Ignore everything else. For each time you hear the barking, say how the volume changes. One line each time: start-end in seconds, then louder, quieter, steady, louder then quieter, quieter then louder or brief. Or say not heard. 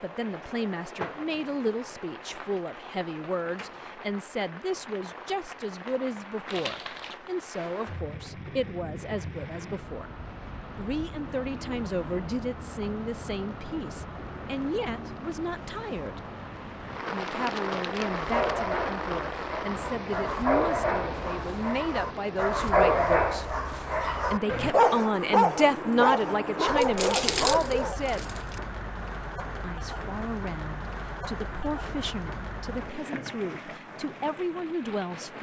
18.1-28.0 louder.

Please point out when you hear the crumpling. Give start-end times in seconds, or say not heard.
6.5-7.2, 17.1-18.6, 26.6-28.6.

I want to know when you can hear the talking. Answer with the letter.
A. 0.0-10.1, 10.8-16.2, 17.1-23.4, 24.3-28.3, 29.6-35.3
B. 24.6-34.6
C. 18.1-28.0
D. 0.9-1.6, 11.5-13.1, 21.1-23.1
A.